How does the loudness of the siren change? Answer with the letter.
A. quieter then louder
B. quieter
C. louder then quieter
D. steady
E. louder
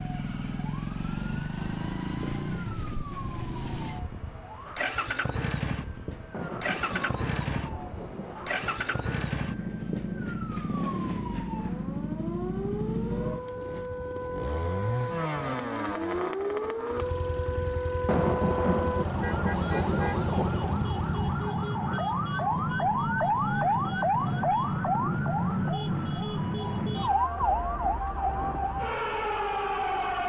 E.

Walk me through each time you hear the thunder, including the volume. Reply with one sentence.
The thunder can be heard from 6.3 to 10.6 s, getting quieter; and briefly from 18.1 to 20.8 s.